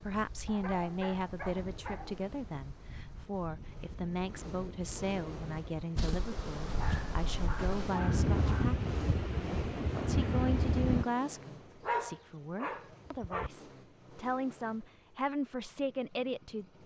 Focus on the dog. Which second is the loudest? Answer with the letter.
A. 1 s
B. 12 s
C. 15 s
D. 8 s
B.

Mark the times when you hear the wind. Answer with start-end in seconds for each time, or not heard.
0.0-11.1.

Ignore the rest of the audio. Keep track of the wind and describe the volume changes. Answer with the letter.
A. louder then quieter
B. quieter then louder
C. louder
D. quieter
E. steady
C.